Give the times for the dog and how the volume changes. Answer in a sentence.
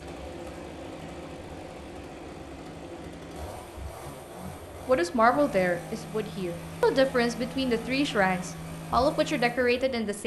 You can't hear the dog here.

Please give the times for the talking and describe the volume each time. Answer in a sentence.
The talking can be heard from 4.3 to 10.2 s, getting quieter then louder.